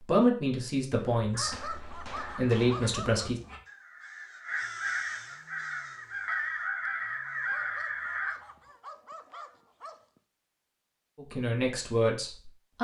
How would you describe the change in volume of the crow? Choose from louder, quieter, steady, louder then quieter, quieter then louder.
louder.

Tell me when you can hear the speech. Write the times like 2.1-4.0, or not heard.
0.0-3.4, 11.2-12.7.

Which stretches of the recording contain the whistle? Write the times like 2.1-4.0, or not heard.
not heard.